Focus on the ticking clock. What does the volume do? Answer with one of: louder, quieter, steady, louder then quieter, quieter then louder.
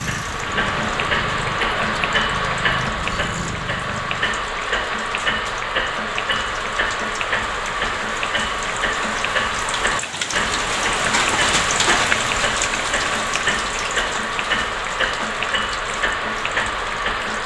steady.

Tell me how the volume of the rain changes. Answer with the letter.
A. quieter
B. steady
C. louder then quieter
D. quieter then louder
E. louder
C.